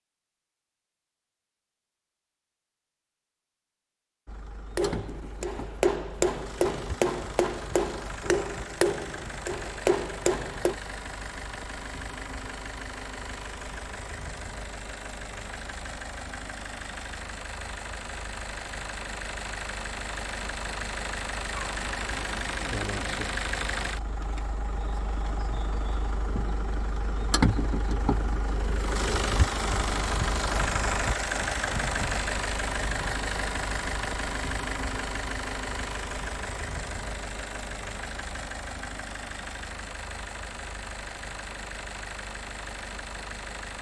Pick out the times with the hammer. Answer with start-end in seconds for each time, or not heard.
4.8-10.8.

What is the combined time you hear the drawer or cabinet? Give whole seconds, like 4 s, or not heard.
2 s.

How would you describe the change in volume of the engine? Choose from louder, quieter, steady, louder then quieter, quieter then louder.
louder then quieter.